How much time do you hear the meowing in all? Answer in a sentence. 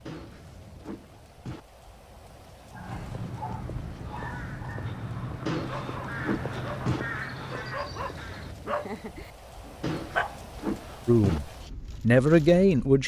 You can hear the meowing for 5 seconds altogether.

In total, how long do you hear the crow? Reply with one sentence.
You can hear the crow for 6 seconds altogether.